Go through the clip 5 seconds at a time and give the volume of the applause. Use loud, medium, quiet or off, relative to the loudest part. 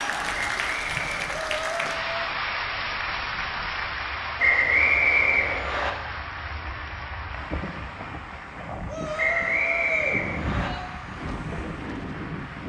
loud, medium, medium.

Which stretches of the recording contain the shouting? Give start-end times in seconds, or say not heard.
1.3-2.4, 8.8-10.8.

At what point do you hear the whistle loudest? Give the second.
5 s.